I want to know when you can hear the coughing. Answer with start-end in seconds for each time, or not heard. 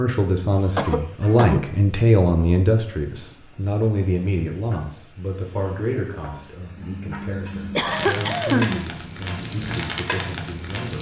0.8-1.7, 6.8-8.8.